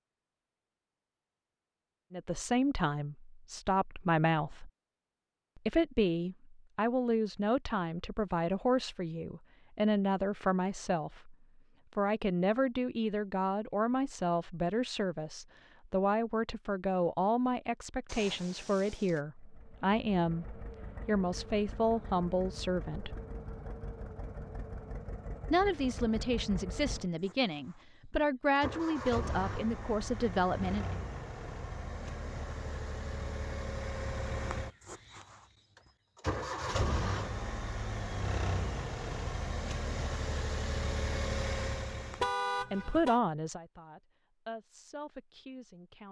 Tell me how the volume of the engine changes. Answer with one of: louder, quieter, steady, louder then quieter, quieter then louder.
louder.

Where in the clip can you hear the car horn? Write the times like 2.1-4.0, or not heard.
18.1-19.2, 42.1-43.2.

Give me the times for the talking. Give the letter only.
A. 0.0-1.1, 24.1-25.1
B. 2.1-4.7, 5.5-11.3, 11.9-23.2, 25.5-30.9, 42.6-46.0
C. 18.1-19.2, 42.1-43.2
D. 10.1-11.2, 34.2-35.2
B.